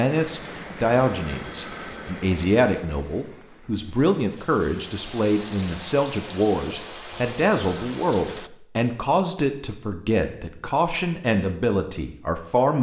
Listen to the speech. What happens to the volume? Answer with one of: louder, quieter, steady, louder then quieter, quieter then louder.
steady.